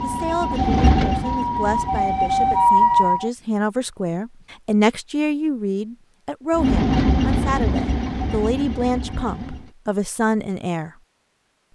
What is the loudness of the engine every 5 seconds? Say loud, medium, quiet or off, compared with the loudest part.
loud, loud, off.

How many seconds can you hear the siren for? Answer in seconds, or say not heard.
3 s.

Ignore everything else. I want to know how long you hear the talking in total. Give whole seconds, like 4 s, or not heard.
11 s.